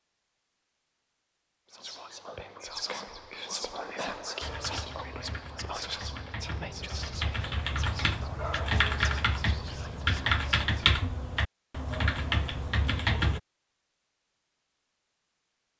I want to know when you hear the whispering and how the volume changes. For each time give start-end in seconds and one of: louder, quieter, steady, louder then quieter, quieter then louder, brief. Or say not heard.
1.7-10.9 quieter.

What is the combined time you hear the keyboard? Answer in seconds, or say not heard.
9 s.